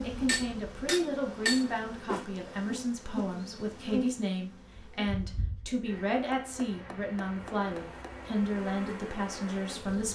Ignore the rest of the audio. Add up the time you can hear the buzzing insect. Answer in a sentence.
The buzzing insect can be heard for 10 seconds in total.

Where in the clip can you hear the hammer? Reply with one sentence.
You can hear the hammer from 0.2 to 2.2 s and from 6.3 to 8.1 s.